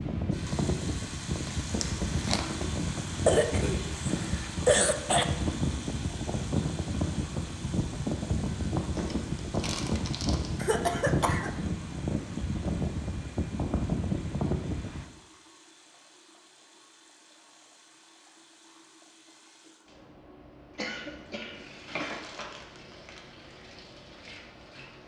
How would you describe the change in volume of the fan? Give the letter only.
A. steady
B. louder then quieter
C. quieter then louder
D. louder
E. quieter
A.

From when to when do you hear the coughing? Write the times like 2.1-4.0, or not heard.
3.2-5.2, 10.6-11.5, 20.8-22.2.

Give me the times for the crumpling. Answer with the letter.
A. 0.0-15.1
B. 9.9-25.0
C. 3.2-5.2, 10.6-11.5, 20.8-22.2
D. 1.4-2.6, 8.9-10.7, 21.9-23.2
D.